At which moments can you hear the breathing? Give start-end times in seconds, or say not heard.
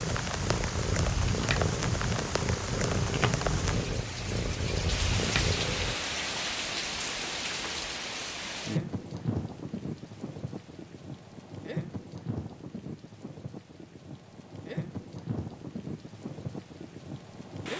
not heard.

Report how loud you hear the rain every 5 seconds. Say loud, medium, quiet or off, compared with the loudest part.
loud, loud, medium, medium.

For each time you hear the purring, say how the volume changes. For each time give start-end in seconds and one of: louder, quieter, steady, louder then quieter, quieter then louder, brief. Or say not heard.
0.0-6.0 steady.